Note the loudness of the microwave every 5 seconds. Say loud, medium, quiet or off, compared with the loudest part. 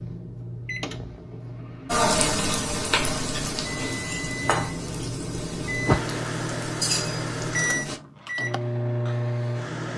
medium, loud.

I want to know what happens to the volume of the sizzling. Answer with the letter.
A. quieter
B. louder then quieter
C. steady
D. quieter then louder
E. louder
D.